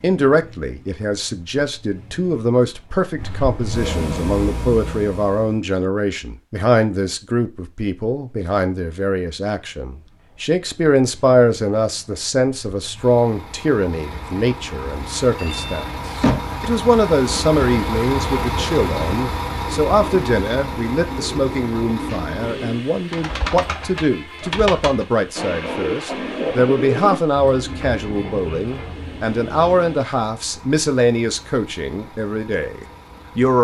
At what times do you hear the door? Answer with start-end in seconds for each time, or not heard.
15.3-16.6.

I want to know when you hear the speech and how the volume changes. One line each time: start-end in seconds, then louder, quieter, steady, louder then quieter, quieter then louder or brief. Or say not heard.
0.0-33.5 steady.